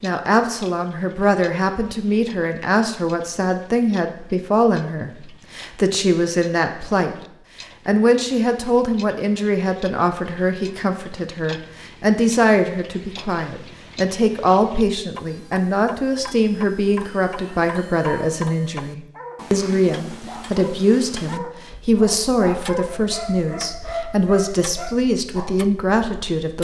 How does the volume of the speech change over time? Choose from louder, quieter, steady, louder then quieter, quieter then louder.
steady.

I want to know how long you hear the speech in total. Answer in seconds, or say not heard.
26 s.